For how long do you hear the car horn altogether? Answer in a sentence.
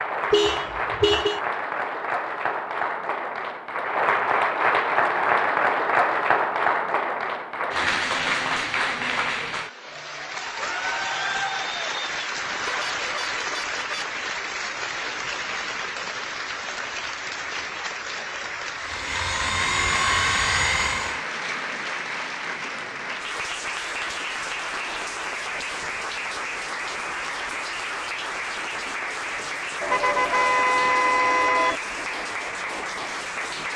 The car horn can be heard for 5 seconds in total.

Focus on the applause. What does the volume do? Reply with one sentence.
The loudness of the applause goes down.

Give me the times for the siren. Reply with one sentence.
You can't hear the siren here.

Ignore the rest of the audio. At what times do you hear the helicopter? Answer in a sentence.
The helicopter can be heard from 18.8 to 21.2 s.